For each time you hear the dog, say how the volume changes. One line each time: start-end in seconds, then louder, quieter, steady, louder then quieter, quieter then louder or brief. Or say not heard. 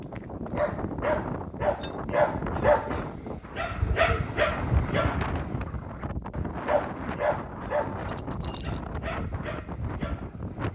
0.1-10.7 quieter.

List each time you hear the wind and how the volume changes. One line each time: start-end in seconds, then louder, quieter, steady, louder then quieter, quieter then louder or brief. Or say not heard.
0.0-10.7 steady.